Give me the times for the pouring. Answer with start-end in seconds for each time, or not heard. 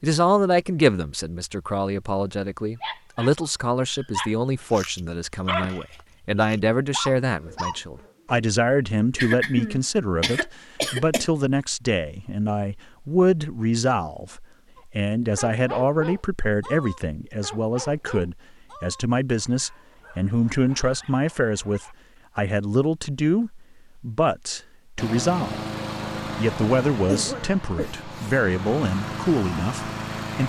not heard.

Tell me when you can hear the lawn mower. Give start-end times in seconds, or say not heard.
24.9-30.4.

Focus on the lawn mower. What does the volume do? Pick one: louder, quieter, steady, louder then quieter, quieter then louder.
quieter then louder.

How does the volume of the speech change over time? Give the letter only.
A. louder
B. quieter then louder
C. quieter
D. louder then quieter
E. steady
E.